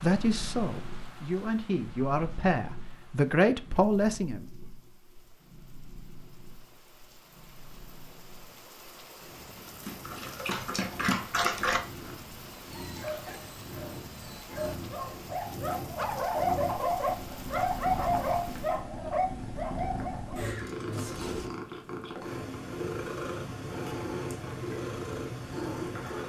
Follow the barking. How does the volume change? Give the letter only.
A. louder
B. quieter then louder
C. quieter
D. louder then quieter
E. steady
B.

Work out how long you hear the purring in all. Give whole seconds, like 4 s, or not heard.
26 s.